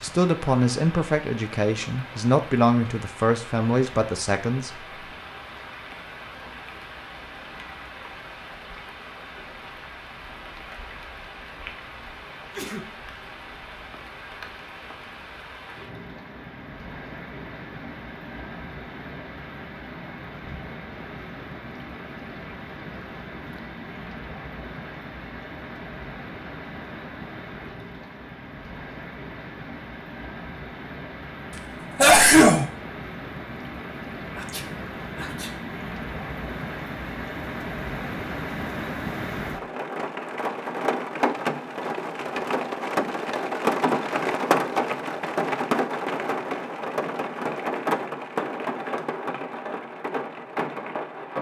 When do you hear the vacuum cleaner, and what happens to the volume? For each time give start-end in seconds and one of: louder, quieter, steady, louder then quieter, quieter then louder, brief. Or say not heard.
not heard.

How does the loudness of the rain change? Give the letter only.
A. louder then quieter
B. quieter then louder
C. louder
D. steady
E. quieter
C.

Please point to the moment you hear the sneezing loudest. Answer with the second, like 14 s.
32 s.